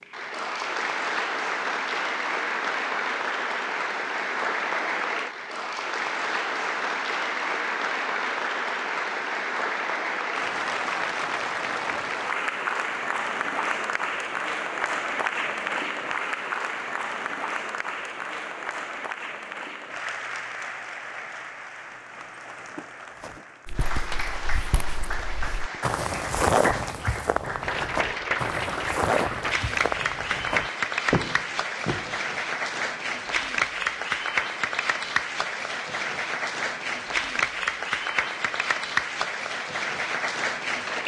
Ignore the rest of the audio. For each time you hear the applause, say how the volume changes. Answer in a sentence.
The applause can be heard from 0.0 to 41.0 s, getting quieter then louder.